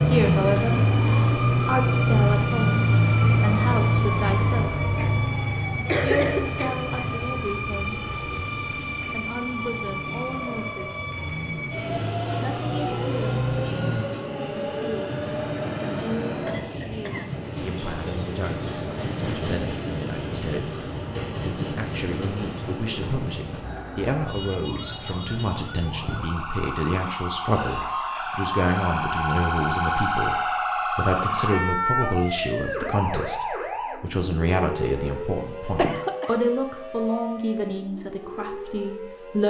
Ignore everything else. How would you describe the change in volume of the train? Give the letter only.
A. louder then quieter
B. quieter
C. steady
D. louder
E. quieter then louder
C.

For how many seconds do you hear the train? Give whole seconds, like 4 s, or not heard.
24 s.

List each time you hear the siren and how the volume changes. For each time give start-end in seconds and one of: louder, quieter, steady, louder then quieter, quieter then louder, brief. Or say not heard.
0.0-14.1 quieter then louder
24.2-39.4 louder then quieter.